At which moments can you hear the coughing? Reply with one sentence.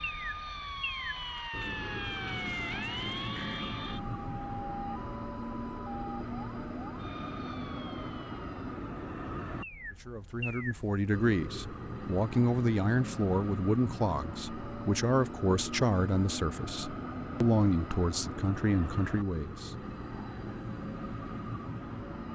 The coughing can't be heard in this clip.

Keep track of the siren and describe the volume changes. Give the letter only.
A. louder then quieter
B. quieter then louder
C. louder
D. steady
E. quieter
E.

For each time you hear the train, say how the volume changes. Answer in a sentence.
You can hear the train from 0.0 to 22.3 s, at a steady volume.